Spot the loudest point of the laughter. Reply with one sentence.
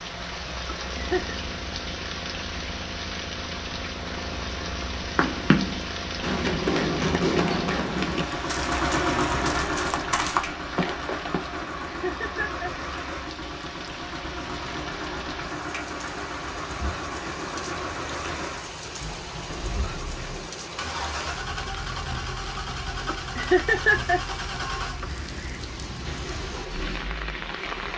The loudest moment of the laughter is at 24 seconds.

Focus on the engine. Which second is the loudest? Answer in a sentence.
The loudest moment of the engine is at 9 seconds.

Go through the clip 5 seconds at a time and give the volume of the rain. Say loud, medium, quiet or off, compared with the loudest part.
loud, loud, medium, loud, loud, loud.